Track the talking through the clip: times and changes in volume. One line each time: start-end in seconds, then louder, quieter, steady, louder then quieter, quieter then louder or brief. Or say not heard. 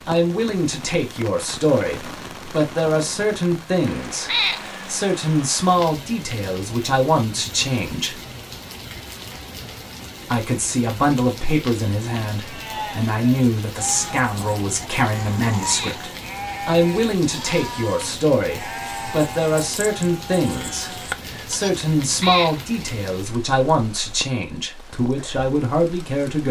0.1-8.2 steady
10.3-26.4 steady.